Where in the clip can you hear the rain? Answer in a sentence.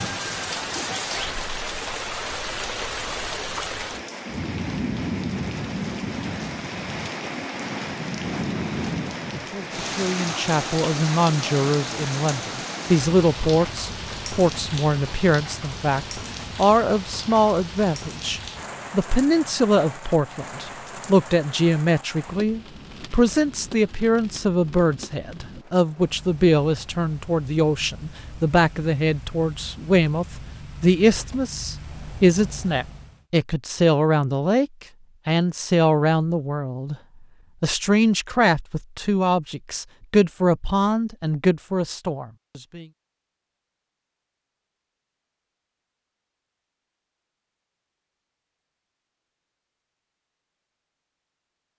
The rain can be heard from 0.0 to 33.2 s.